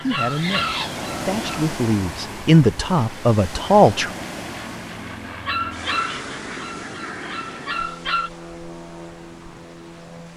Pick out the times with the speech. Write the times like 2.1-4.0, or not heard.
0.0-4.1.